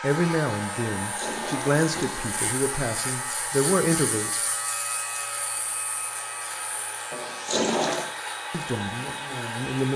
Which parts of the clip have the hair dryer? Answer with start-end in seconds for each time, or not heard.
0.0-9.9.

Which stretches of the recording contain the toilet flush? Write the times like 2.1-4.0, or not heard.
1.0-2.5, 7.1-8.1.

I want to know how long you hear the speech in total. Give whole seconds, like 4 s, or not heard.
6 s.